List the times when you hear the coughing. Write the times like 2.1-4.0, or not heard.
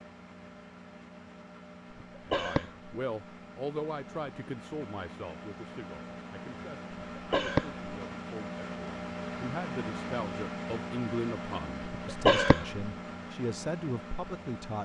2.0-2.9, 6.9-7.8, 11.9-12.8.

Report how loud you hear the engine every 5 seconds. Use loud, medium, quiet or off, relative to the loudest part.
medium, loud, loud.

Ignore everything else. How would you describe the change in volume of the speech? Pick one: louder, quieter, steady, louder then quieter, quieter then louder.
quieter then louder.